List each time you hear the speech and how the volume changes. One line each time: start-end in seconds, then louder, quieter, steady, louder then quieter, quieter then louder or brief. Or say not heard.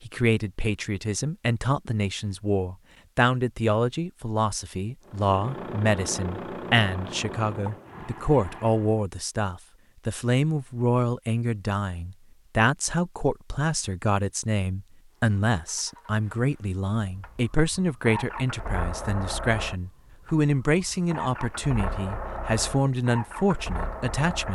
0.0-24.5 steady.